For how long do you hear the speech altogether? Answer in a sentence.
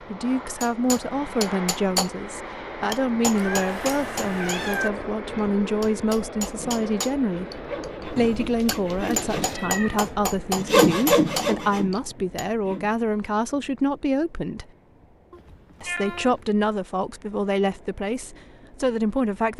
The speech can be heard for 18 seconds in total.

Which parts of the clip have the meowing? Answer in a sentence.
The meowing can be heard from 3.4 to 4.9 s, from 8.2 to 10.1 s and from 15.3 to 16.5 s.